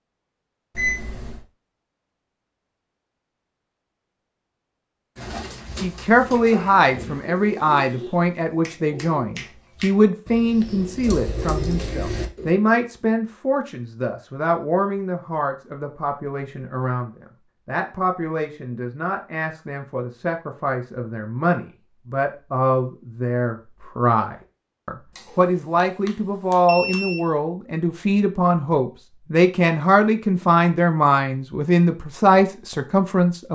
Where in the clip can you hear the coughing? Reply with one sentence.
The coughing can't be heard in this clip.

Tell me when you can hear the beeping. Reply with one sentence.
The beeping can be heard from 0.8 to 1.4 s and from 25.1 to 27.2 s.